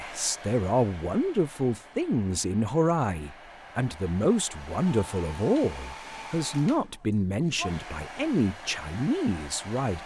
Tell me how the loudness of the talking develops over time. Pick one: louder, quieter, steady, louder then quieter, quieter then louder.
steady.